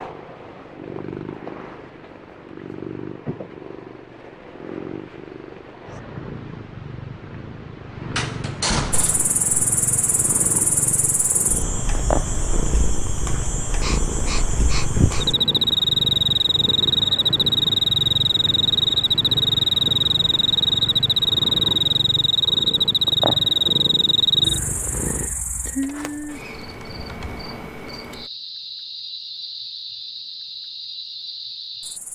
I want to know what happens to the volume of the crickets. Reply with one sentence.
The loudness of the crickets goes up, then down.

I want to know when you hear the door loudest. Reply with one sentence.
The volume of the door peaks at 9 seconds.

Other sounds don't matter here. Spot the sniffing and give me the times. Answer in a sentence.
The sniffing can be heard from 13.8 to 15.2 s.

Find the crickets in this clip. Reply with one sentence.
The crickets can be heard from 9.0 to 32.1 s.